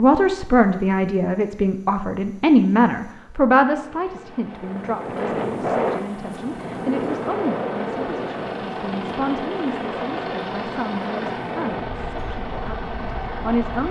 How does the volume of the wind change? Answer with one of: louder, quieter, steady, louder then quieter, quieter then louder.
quieter.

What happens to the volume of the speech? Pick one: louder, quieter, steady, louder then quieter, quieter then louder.
quieter.